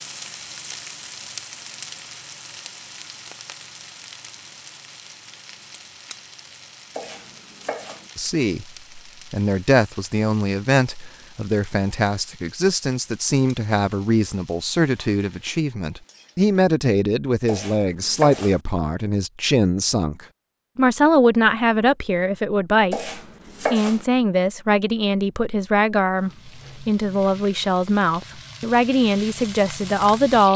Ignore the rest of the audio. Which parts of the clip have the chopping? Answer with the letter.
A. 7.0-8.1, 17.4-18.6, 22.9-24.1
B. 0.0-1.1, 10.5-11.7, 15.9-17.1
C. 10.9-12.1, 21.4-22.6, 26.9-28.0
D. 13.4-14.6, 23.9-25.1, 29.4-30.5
A.